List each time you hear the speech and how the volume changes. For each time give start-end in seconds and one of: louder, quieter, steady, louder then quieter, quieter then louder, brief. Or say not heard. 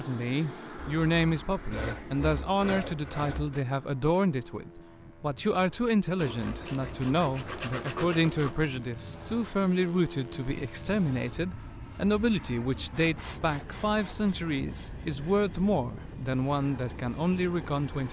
0.0-18.0 steady.